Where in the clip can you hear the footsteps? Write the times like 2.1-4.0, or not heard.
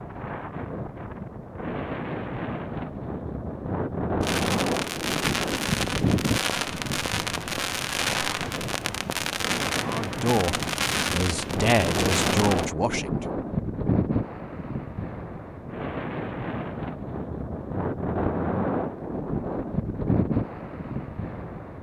not heard.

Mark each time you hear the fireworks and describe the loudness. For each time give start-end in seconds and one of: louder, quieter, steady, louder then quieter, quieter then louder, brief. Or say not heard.
4.2-12.7 steady.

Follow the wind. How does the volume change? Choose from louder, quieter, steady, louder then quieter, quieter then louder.
steady.